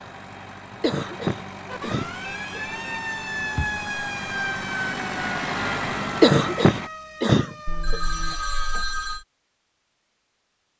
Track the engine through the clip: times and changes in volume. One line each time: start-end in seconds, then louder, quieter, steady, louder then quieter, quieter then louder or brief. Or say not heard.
0.0-6.9 louder.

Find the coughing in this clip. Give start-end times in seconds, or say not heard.
0.8-2.6, 6.2-8.0.